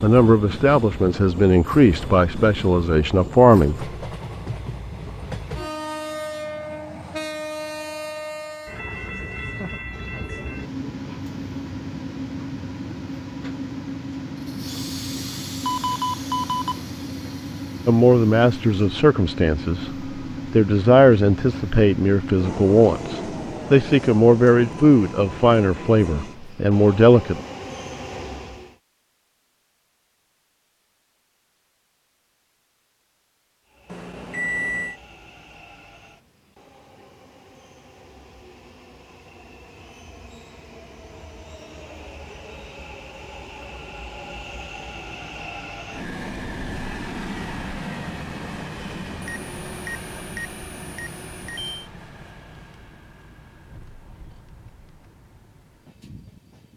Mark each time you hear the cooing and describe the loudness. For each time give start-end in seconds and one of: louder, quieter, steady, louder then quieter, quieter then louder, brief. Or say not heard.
not heard.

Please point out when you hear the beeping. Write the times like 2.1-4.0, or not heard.
15.7-16.8, 33.9-35.0, 49.2-51.9.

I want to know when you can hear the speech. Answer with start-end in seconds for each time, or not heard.
0.0-3.9, 17.9-27.4.